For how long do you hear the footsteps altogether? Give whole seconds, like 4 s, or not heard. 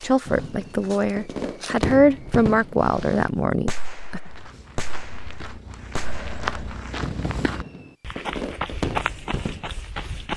10 s.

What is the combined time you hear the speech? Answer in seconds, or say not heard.
4 s.